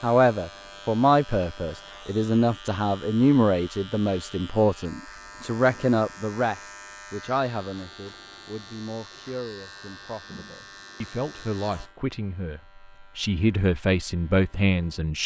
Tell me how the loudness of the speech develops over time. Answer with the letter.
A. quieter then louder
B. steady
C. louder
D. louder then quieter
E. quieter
A.